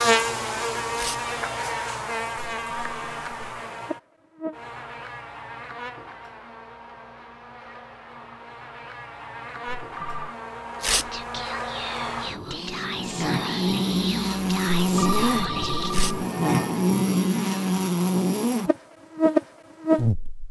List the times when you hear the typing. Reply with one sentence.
The typing can't be heard in this clip.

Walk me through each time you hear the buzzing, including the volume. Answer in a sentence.
You can hear the buzzing from 0.0 to 20.4 s, getting quieter then louder.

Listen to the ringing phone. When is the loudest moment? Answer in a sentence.
The volume of the ringing phone peaks at 15 seconds.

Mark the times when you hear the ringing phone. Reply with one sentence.
The ringing phone can be heard from 2.5 to 3.5 s, from 9.7 to 10.3 s and from 14.8 to 16.2 s.